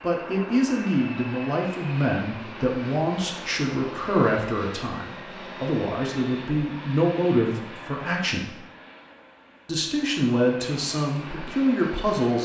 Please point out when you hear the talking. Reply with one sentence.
The talking can be heard from 0.0 to 8.6 s and from 9.7 to 12.3 s.